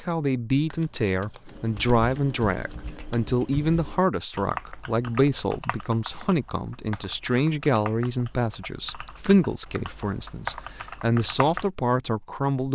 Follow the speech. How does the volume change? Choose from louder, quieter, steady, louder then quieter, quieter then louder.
steady.